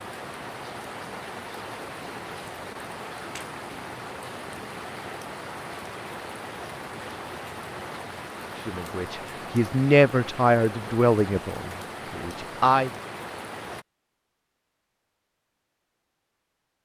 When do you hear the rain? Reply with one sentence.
You can hear the rain from 0.0 to 13.8 s.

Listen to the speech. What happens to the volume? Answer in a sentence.
The volume of the speech goes up, then down.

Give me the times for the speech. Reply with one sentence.
You can hear the speech from 8.7 to 12.9 s.